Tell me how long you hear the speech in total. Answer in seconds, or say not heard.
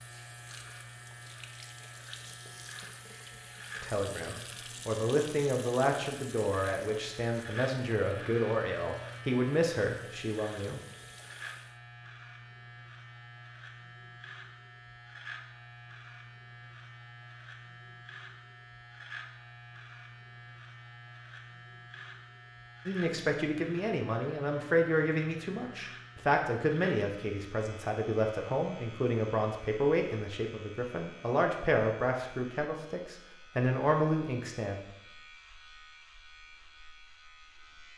19 s.